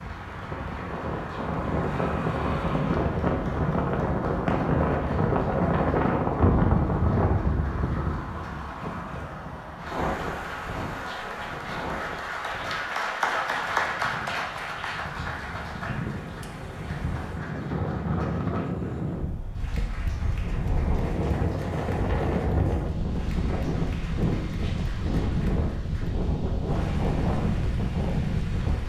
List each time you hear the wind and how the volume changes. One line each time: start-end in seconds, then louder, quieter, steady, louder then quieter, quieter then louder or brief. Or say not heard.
0.0-28.8 quieter then louder.